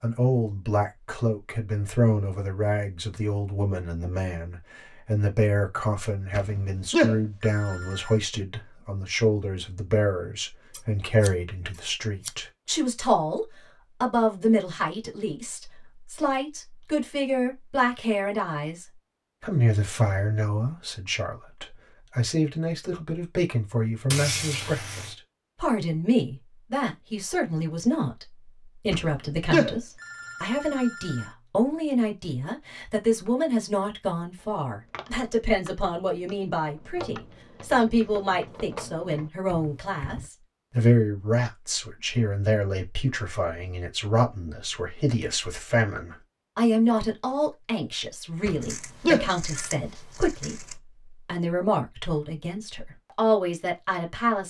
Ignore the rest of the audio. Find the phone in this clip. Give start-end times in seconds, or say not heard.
6.3-8.2, 28.9-31.2, 48.5-49.6.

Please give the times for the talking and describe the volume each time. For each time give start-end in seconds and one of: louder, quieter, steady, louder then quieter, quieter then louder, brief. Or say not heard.
0.0-54.4 steady.